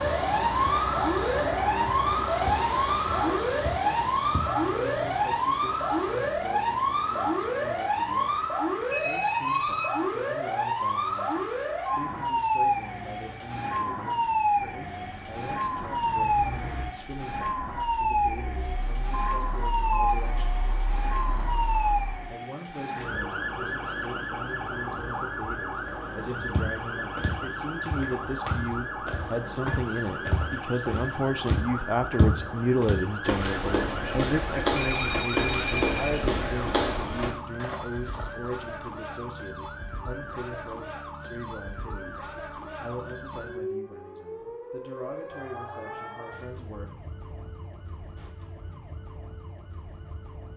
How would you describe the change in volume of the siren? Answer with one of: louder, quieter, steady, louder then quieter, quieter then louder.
quieter.